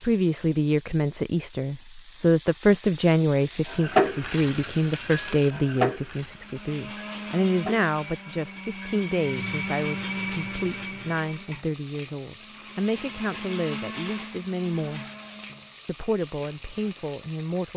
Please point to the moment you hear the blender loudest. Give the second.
10 s.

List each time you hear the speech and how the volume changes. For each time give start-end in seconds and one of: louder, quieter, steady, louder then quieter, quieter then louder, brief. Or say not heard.
0.0-15.1 quieter
15.8-17.7 brief.